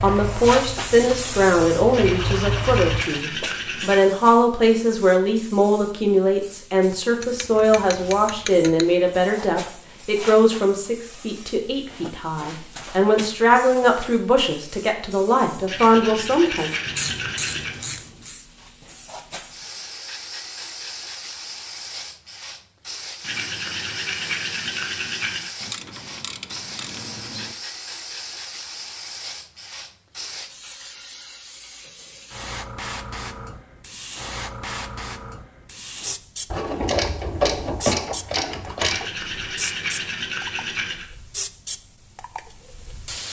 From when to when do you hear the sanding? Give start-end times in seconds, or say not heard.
1.9-4.1, 15.7-17.8, 23.2-25.5, 38.8-41.1.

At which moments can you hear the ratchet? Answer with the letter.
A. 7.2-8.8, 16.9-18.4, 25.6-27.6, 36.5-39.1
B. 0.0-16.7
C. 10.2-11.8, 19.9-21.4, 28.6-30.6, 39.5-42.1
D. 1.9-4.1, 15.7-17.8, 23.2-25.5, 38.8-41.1
A.